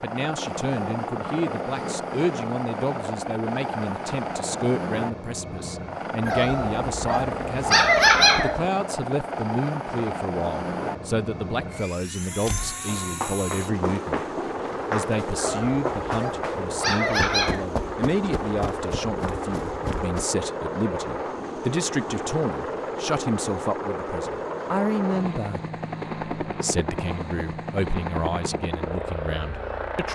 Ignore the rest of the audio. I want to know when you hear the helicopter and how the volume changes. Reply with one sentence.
You can hear the helicopter from 0.0 to 30.1 s, at a steady volume.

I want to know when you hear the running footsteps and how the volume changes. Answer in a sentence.
The running footsteps can be heard from 12.4 to 20.2 s, getting quieter.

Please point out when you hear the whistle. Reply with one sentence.
You can't hear the whistle here.